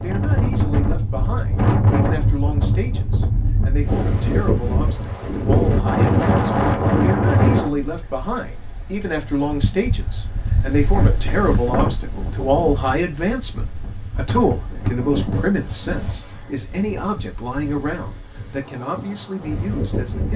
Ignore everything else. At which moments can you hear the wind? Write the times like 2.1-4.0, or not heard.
0.0-20.3.